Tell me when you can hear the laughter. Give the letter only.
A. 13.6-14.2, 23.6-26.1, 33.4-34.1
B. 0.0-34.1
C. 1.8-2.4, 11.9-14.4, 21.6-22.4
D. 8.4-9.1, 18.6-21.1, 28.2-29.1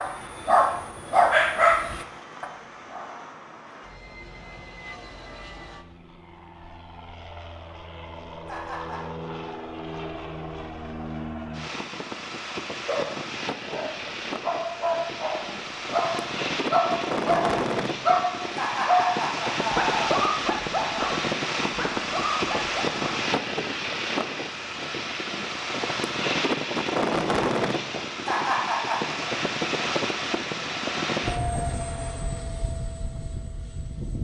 D.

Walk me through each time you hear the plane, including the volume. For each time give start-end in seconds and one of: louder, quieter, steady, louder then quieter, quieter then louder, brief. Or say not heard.
0.0-34.1 louder.